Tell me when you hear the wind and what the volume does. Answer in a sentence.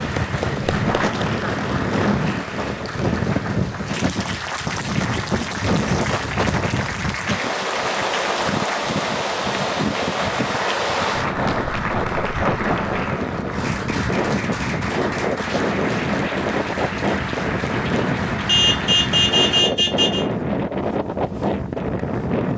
You can hear the wind from 0.0 to 22.5 s, at a steady volume.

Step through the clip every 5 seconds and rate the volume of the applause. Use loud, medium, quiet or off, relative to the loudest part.
loud, loud, loud, loud, off.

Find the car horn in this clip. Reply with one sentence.
The car horn can be heard from 18.4 to 20.2 s.